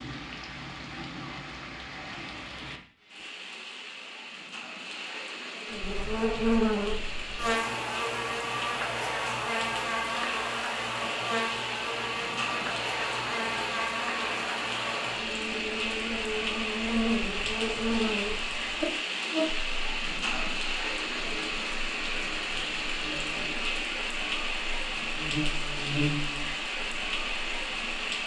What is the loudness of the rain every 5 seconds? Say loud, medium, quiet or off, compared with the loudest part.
medium, medium, loud, loud, loud, loud.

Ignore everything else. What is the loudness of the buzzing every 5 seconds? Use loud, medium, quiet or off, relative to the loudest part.
off, loud, loud, loud, quiet, medium.